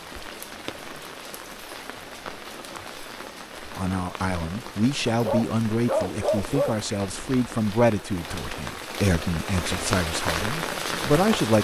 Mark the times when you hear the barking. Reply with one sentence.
You can hear the barking from 5.0 to 6.8 s.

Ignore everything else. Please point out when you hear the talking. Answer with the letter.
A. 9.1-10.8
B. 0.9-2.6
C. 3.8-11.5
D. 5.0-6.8
C.